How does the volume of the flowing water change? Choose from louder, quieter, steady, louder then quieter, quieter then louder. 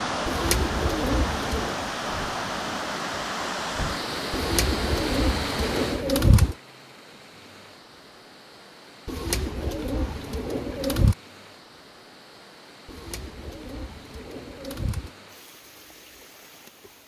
quieter.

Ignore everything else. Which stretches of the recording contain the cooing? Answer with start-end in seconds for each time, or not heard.
0.2-1.8, 4.3-6.5, 9.1-11.2, 12.8-15.1.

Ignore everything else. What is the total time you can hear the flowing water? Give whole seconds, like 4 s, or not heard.
17 s.